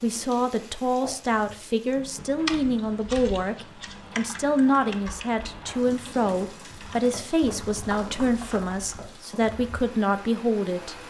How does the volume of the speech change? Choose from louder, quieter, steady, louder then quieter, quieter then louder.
steady.